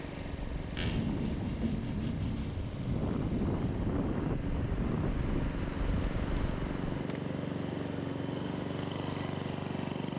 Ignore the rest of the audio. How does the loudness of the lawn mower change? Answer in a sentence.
The volume of the lawn mower goes up.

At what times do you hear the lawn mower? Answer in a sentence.
You can hear the lawn mower from 0.0 to 10.1 s.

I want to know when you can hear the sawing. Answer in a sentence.
You can hear the sawing from 0.8 to 2.5 s.